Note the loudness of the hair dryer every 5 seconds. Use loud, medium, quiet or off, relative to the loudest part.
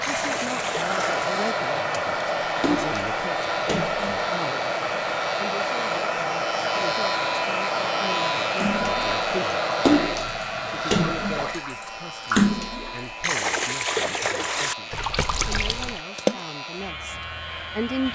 loud, loud, medium, quiet.